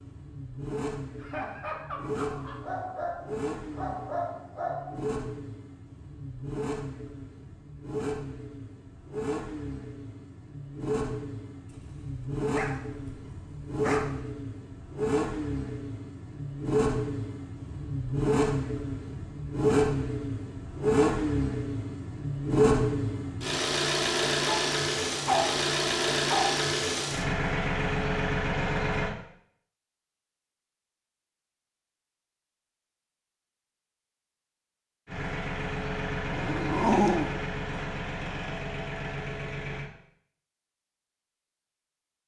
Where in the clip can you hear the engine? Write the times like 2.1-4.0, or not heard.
0.0-29.1, 35.0-39.9.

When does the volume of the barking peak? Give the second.
37 s.